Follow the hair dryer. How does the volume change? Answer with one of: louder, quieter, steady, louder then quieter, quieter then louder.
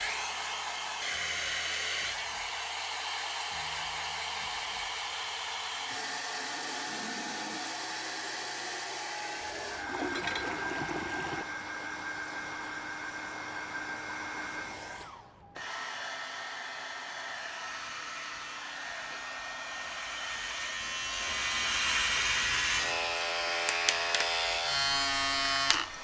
quieter.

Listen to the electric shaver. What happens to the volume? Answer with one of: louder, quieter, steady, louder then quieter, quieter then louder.
louder.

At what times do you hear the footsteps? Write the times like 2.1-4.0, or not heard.
not heard.